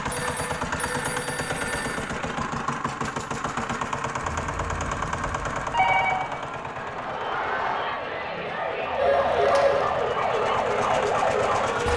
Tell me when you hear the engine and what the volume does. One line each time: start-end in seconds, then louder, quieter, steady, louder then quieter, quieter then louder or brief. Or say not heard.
0.0-11.9 quieter then louder.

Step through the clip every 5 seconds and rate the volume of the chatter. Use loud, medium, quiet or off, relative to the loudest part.
off, loud, loud.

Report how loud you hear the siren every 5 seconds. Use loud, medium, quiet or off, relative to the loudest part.
off, loud, loud.